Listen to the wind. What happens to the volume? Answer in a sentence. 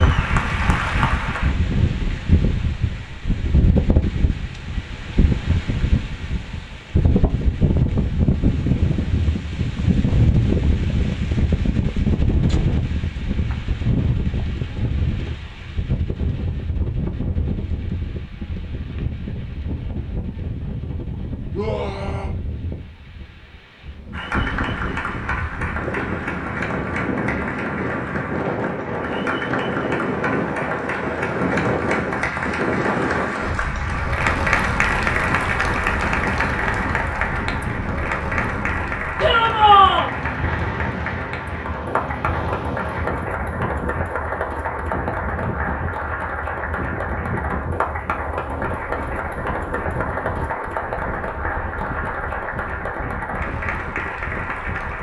The volume of the wind goes down.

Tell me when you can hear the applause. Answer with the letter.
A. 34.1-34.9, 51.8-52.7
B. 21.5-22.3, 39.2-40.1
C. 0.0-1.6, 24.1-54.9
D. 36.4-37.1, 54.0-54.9
C.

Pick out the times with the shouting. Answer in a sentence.
You can hear the shouting from 21.5 to 22.3 s and from 39.2 to 40.1 s.